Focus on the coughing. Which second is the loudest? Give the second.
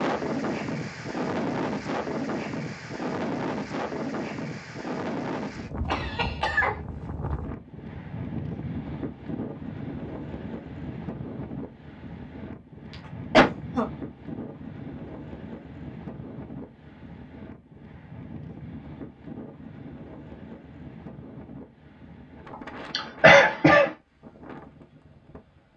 23 s.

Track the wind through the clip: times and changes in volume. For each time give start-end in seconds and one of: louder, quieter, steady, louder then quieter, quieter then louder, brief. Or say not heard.
0.0-25.7 quieter.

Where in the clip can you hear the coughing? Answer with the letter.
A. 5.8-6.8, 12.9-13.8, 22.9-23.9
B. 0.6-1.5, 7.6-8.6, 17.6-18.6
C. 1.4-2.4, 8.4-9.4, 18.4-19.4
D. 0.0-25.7
A.